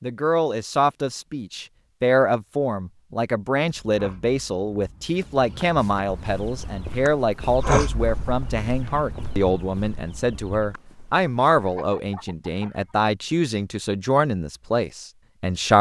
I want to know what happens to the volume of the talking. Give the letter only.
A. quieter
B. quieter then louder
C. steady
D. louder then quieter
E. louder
C.